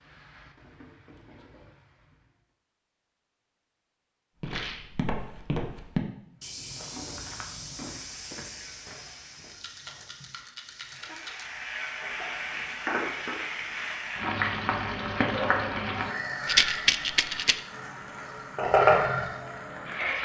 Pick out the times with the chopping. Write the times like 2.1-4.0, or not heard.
not heard.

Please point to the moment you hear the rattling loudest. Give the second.
17 s.